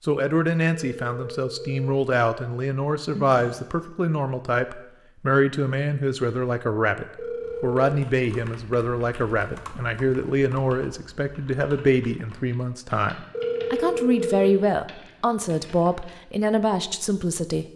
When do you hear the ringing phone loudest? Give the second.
14 s.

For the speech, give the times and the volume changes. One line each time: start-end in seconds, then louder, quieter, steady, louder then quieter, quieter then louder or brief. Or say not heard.
0.0-17.6 steady.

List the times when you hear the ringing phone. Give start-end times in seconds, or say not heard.
0.7-1.9, 7.2-7.8, 13.3-14.6.